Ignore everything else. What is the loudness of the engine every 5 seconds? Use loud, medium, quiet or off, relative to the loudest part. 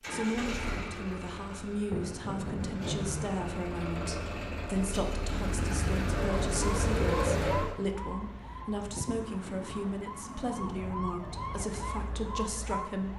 medium, loud, off.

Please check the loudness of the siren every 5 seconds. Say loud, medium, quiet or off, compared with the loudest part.
off, loud, loud.